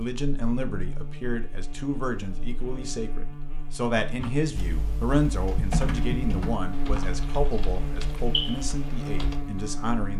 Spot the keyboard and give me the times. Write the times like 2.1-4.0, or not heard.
4.2-9.4.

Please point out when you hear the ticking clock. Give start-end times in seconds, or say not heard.
not heard.